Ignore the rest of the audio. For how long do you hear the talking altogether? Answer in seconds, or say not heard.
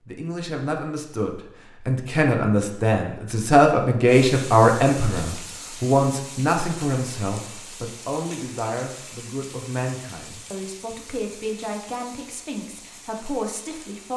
14 s.